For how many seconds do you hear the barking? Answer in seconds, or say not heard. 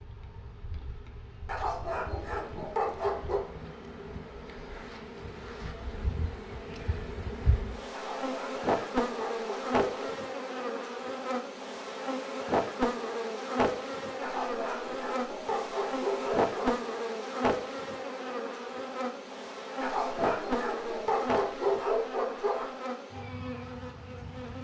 10 s.